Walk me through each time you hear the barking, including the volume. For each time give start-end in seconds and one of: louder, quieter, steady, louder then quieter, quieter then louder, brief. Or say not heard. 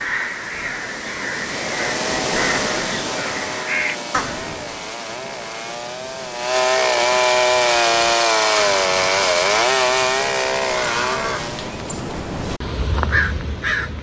not heard.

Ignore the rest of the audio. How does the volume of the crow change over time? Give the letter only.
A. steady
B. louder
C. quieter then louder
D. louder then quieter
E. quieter
C.